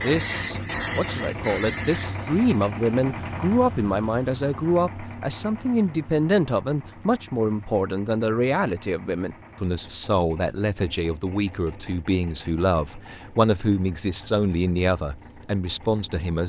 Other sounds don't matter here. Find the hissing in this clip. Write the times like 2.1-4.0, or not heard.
0.0-3.0.